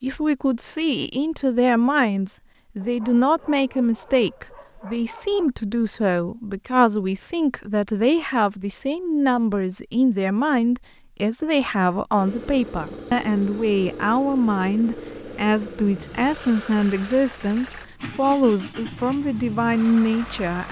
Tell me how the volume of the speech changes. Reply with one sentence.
The loudness of the speech stays about the same.